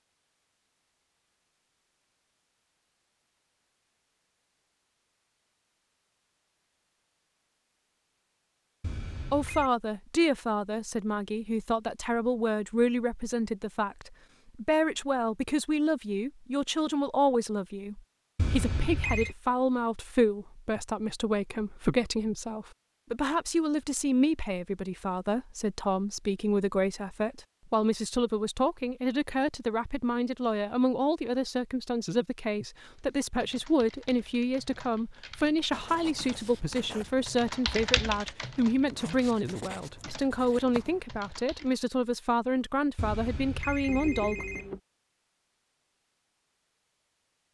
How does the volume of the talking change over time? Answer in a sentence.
The loudness of the talking stays about the same.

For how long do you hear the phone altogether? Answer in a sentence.
You can hear the phone for 4 seconds altogether.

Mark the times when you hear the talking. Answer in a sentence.
The talking can be heard from 9.3 to 44.5 s.